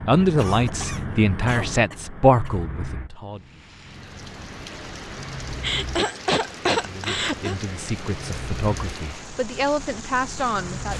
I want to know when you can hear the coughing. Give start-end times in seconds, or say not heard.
0.3-2.6, 5.5-7.5.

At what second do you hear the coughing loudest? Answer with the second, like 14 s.
7 s.